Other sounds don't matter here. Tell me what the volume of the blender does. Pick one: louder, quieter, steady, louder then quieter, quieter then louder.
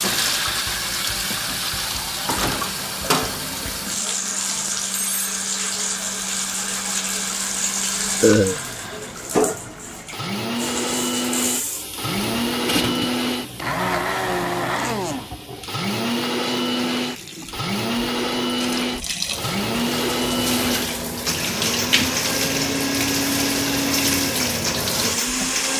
louder.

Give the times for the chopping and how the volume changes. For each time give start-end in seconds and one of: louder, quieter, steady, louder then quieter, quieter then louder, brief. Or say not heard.
not heard.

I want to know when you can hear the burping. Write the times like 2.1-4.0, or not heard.
8.2-8.6.